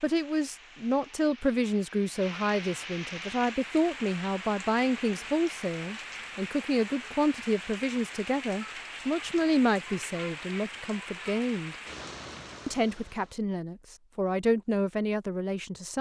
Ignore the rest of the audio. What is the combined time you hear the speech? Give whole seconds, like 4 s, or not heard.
15 s.